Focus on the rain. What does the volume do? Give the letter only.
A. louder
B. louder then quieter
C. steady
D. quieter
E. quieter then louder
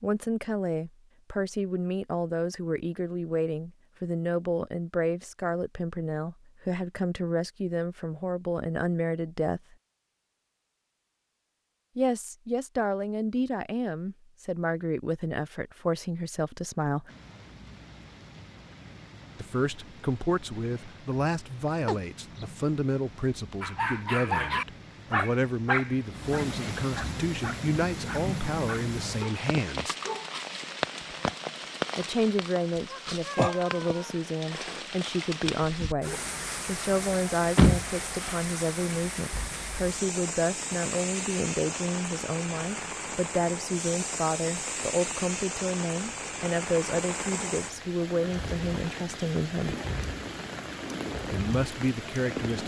A.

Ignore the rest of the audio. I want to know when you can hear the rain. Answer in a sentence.
The rain can be heard from 17.1 to 52.6 s.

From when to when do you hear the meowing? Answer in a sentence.
You can hear the meowing from 21.9 to 22.4 s and from 32.9 to 34.2 s.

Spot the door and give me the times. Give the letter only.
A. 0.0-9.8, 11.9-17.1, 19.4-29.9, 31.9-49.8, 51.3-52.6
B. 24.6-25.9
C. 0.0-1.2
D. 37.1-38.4
D.